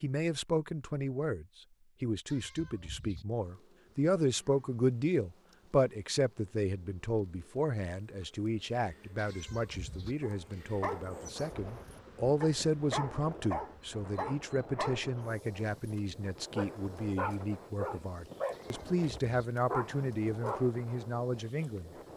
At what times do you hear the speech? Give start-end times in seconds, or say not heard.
0.0-21.9.